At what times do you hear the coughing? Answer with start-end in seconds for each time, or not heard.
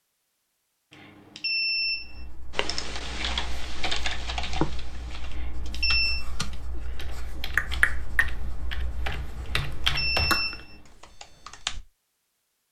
6.7-7.5.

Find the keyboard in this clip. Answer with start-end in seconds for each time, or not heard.
2.5-11.8.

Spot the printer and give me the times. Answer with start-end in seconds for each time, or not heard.
not heard.